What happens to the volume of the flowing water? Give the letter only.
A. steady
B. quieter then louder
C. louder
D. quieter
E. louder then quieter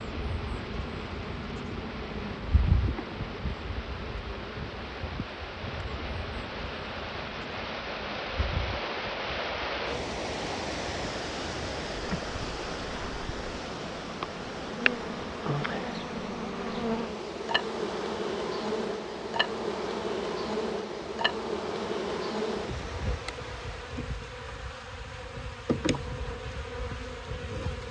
E.